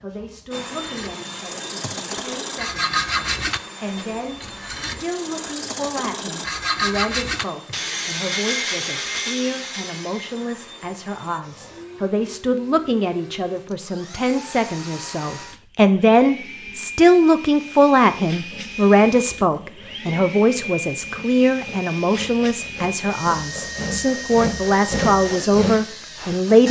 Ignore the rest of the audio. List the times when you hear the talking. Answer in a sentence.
The talking can be heard from 0.0 to 26.6 s.